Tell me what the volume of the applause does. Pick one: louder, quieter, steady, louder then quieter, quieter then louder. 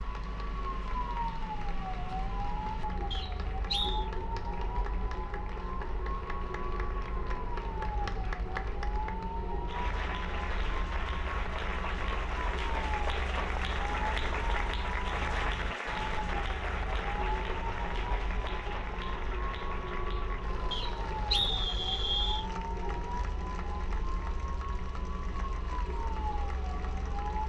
louder then quieter.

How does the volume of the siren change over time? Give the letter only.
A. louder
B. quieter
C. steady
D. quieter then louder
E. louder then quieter
C.